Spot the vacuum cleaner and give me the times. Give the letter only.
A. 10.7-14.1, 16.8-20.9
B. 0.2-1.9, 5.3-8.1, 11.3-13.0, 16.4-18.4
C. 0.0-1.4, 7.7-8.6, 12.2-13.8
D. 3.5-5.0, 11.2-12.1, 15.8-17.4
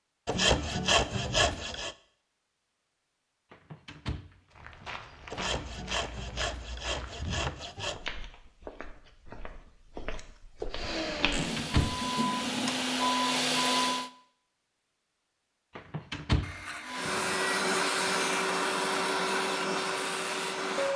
A.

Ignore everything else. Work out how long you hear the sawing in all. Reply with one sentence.
You can hear the sawing for 8 seconds altogether.